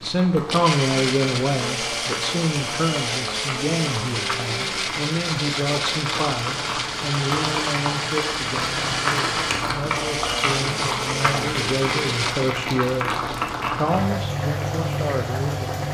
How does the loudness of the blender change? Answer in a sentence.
The volume of the blender goes down.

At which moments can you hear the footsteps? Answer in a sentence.
The footsteps can't be heard in this clip.